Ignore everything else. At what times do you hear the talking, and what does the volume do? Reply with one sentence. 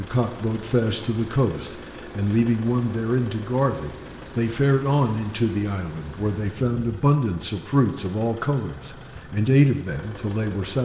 The talking can be heard from 0.0 to 10.8 s, at a steady volume.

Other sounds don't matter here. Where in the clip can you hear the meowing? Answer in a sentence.
You can't hear the meowing here.